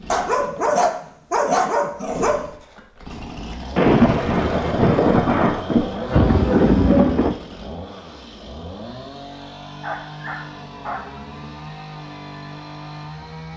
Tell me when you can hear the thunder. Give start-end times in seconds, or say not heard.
3.8-7.3.